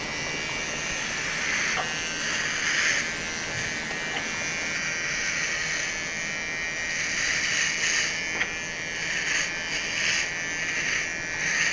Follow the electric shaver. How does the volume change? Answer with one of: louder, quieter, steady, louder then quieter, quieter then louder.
steady.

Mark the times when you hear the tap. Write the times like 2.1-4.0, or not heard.
0.0-4.8.